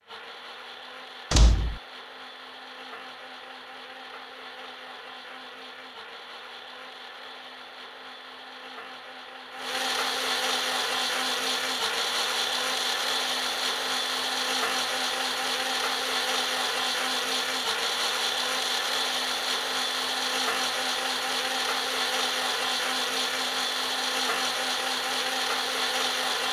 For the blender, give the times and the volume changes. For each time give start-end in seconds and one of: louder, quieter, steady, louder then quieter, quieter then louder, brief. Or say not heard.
0.0-26.4 louder.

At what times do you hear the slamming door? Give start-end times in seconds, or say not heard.
1.3-1.8.